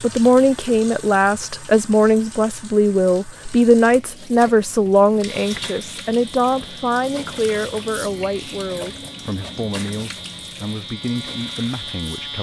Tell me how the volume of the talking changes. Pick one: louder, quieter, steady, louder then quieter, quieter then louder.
quieter.